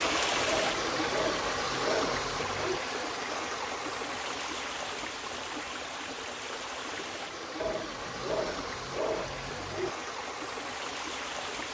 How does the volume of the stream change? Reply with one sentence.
The volume of the stream goes down.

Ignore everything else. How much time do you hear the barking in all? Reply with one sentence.
You can hear the barking for 5 seconds altogether.